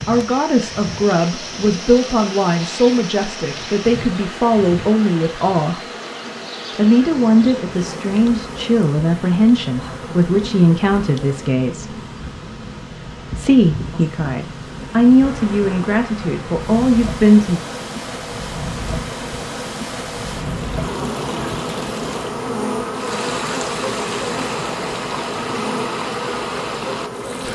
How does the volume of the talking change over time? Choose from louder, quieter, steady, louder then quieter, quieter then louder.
steady.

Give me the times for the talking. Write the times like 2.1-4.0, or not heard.
0.1-5.9, 6.8-12.0, 13.3-17.6.